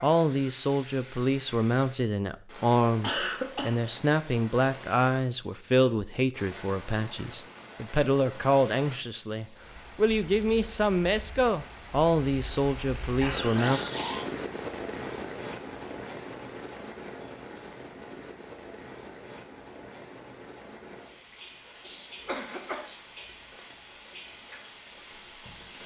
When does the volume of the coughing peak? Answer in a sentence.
The volume of the coughing peaks at 3 seconds.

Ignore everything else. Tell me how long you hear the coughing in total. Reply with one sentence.
You can hear the coughing for 3 seconds altogether.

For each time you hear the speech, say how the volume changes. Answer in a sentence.
You can hear the speech from 0.0 to 13.8 s, at a steady volume.